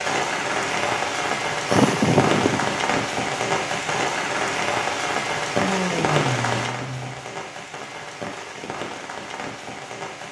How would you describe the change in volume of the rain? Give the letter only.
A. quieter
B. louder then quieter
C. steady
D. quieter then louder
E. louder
A.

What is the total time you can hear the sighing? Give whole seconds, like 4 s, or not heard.
3 s.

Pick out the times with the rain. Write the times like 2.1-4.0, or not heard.
0.0-10.2.